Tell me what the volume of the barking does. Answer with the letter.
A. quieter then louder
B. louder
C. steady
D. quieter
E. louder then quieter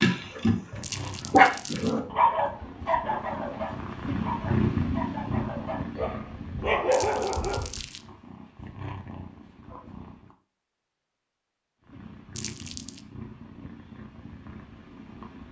A.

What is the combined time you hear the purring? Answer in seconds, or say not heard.
14 s.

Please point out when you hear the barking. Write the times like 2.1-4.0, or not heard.
0.0-7.7.